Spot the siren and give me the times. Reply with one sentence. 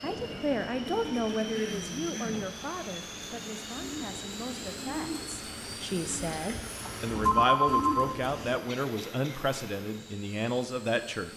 You can't hear the siren here.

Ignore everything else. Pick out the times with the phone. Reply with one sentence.
You can hear the phone from 6.3 to 8.1 s.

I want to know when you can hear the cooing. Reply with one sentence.
The cooing can be heard from 3.8 to 8.6 s.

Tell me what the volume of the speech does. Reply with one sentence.
The volume of the speech goes down, then up.